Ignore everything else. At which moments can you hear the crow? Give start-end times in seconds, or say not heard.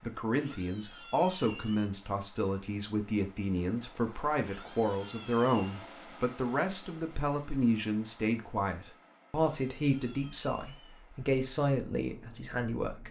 not heard.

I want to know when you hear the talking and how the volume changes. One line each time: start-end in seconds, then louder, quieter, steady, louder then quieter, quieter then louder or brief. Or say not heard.
0.0-13.0 steady.